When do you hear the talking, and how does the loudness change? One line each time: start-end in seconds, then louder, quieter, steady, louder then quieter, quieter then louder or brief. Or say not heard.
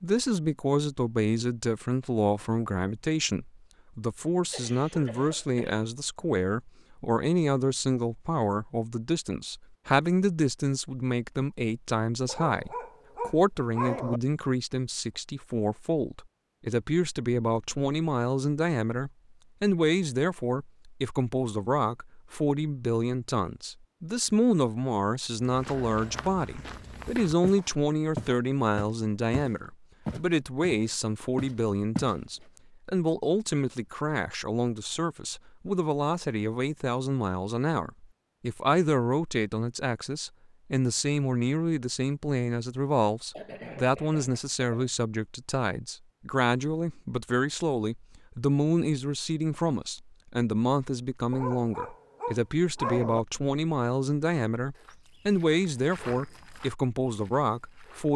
0.0-58.1 steady.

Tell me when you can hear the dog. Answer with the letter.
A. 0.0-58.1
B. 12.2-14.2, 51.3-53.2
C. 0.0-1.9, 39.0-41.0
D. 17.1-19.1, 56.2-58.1
B.